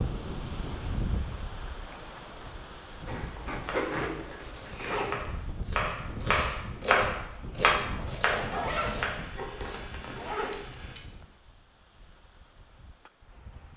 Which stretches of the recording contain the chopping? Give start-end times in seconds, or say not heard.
3.6-9.8.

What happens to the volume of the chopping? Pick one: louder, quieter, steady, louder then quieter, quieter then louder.
louder then quieter.